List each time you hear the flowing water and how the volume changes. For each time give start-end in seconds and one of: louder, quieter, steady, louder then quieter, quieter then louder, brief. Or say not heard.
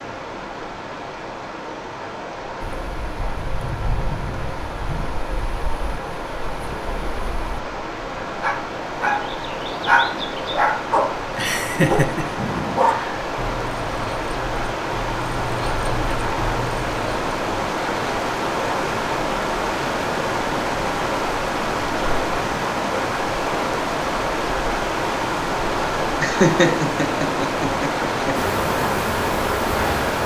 0.0-30.2 louder.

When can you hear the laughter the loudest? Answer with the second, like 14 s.
27 s.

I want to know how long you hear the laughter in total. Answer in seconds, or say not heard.
4 s.